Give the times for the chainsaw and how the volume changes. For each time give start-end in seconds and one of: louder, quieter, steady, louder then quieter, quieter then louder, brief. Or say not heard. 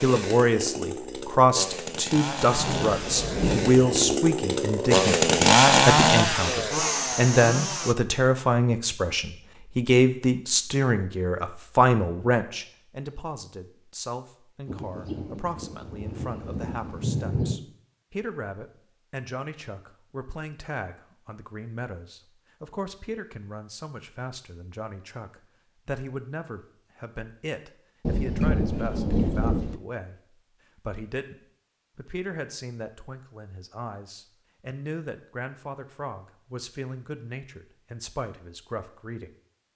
0.0-8.0 louder then quieter.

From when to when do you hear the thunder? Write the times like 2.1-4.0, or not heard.
2.5-4.2, 14.7-17.6, 28.0-29.8.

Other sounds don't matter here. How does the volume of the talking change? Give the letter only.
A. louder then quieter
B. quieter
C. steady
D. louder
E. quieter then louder
B.